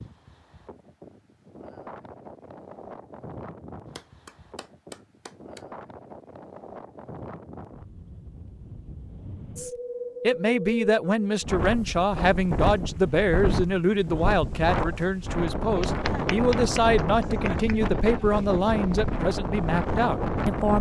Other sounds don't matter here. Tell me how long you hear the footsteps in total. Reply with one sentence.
You can't hear the footsteps here.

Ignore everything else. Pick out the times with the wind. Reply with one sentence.
The wind can be heard from 0.0 to 20.7 s.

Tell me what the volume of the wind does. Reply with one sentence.
The volume of the wind goes up.